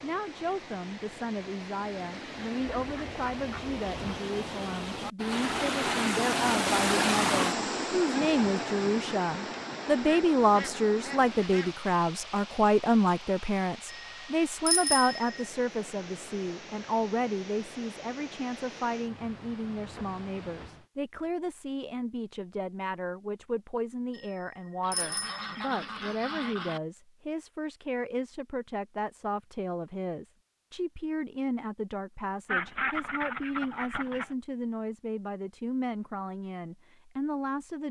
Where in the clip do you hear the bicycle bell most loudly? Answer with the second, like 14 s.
15 s.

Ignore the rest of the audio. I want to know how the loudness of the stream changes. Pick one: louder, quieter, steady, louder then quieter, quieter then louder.
louder then quieter.